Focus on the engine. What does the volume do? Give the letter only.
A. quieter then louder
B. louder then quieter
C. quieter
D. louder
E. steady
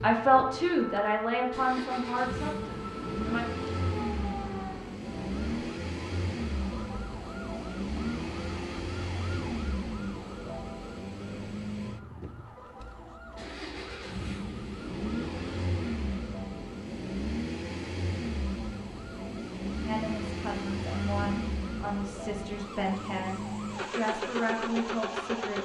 E.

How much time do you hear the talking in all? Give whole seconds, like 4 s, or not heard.
9 s.